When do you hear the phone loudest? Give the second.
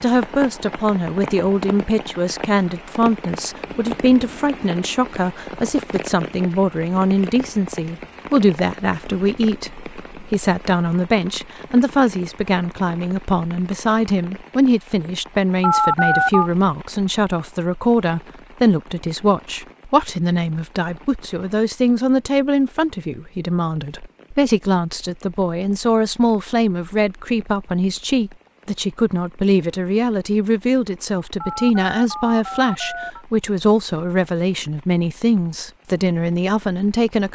16 s.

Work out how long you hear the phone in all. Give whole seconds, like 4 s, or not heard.
3 s.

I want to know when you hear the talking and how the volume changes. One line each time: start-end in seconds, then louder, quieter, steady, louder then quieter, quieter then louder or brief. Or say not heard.
0.0-37.3 steady.